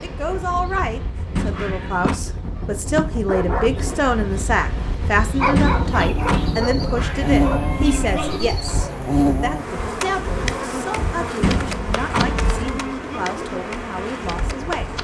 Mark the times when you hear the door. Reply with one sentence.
You can hear the door from 1.3 to 2.2 s, from 5.5 to 6.6 s and from 11.4 to 12.5 s.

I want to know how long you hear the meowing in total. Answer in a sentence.
The meowing can be heard for 4 seconds in total.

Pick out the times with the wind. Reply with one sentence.
You can hear the wind from 0.0 to 14.9 s.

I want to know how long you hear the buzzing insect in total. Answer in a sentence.
You can hear the buzzing insect for 15 seconds altogether.